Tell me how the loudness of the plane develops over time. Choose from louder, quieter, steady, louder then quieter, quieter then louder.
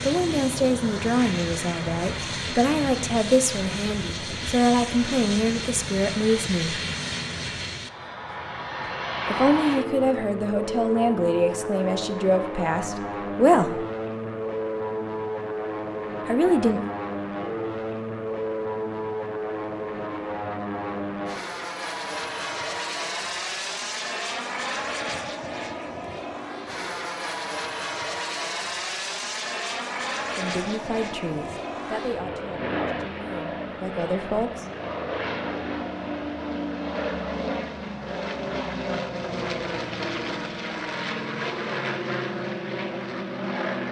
steady.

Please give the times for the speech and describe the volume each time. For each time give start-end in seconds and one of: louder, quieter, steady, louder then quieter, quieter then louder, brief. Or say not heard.
0.0-6.8 steady
9.2-13.8 steady
16.2-16.8 brief
30.4-34.6 quieter then louder.